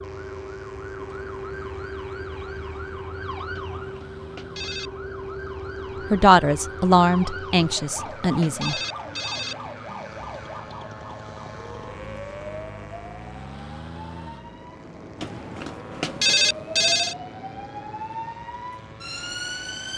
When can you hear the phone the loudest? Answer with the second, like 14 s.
16 s.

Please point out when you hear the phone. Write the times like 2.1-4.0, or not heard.
3.5-4.9, 7.8-9.6, 15.2-17.1.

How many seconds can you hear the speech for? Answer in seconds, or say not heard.
3 s.